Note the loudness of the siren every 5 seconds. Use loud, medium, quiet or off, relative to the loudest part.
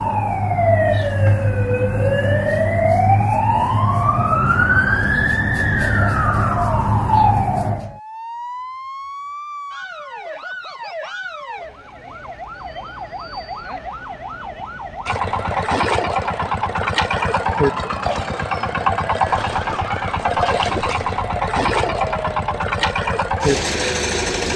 loud, loud, quiet, quiet, quiet.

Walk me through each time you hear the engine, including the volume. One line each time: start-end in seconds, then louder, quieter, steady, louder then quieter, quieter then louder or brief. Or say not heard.
15.1-24.5 steady.